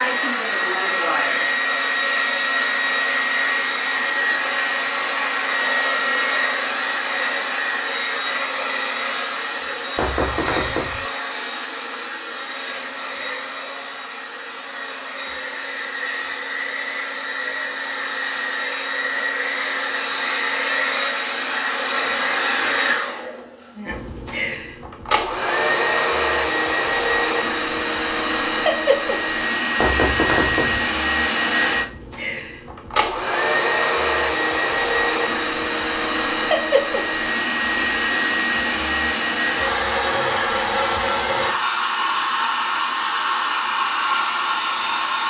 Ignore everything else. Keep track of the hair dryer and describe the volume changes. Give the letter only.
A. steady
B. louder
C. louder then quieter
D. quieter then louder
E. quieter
D.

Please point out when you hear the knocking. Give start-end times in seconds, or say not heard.
9.9-11.1, 29.8-30.9.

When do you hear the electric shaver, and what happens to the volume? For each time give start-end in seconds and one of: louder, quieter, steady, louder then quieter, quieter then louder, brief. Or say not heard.
not heard.